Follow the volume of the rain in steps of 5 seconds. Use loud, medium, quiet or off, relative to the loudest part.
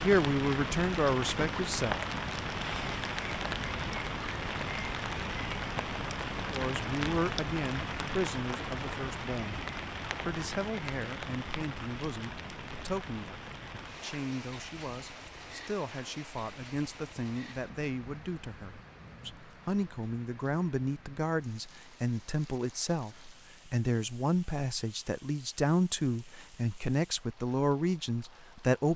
loud, loud, medium, quiet, quiet, quiet.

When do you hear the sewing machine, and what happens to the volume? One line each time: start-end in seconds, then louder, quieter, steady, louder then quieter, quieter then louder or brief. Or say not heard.
not heard.